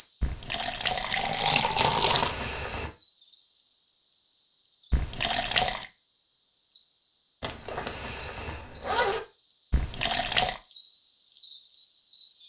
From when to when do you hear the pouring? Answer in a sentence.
You can hear the pouring from 0.2 to 2.4 s, from 4.9 to 5.8 s and from 9.7 to 10.6 s.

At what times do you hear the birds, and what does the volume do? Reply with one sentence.
You can hear the birds from 0.0 to 12.4 s, at a steady volume.